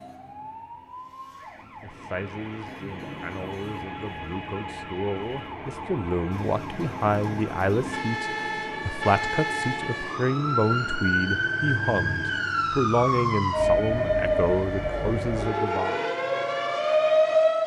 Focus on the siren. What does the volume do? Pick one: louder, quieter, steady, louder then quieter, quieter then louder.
louder.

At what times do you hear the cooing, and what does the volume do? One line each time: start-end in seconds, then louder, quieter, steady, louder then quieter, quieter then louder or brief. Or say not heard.
not heard.